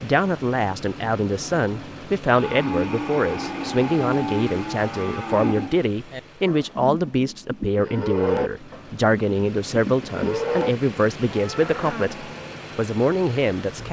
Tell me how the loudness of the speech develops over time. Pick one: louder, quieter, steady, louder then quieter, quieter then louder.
steady.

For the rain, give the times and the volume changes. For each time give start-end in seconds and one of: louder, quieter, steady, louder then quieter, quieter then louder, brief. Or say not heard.
not heard.